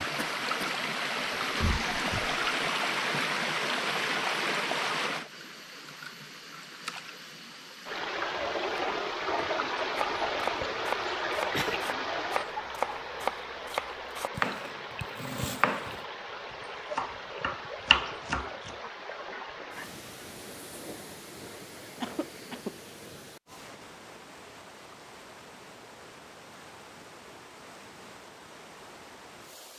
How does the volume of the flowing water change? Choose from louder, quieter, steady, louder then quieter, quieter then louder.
quieter.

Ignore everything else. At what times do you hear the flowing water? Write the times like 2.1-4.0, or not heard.
0.0-29.7.